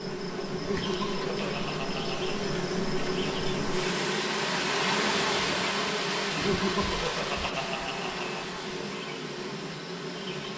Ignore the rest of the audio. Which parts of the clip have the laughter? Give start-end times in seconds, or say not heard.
0.5-2.4, 6.3-8.4.